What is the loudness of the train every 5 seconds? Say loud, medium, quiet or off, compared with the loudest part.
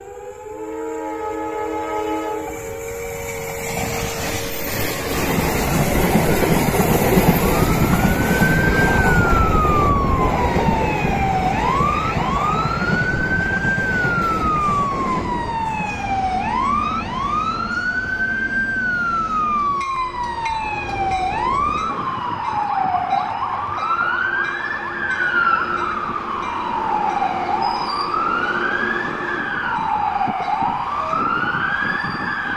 medium, loud, medium, quiet, quiet, quiet, quiet.